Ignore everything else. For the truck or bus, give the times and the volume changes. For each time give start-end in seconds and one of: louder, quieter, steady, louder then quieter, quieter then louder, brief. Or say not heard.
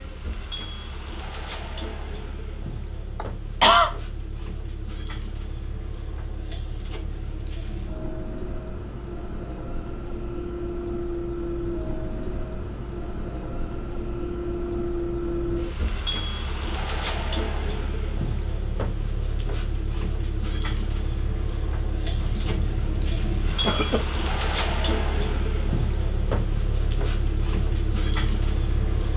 0.0-29.1 louder.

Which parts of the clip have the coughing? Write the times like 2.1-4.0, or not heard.
3.1-3.9, 22.1-24.0.